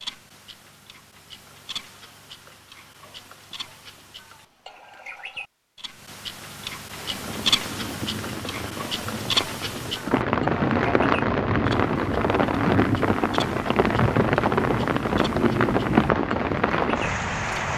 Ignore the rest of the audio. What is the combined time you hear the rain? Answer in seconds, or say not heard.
11 s.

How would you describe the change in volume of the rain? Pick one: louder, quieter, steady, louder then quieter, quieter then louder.
louder.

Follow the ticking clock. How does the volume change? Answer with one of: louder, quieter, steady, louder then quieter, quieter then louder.
louder then quieter.